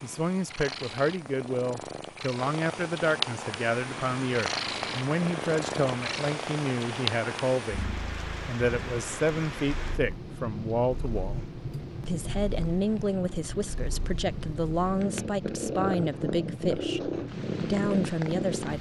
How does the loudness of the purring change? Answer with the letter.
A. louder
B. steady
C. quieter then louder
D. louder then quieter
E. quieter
C.